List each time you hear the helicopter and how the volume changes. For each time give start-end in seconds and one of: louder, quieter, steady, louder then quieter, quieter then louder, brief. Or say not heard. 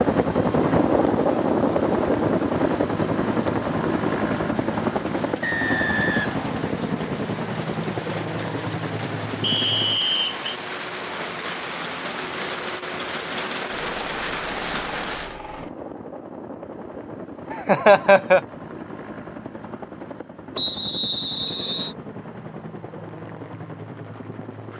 0.0-24.7 quieter.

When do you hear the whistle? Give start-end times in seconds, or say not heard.
5.4-6.5, 9.4-10.4, 20.6-21.9.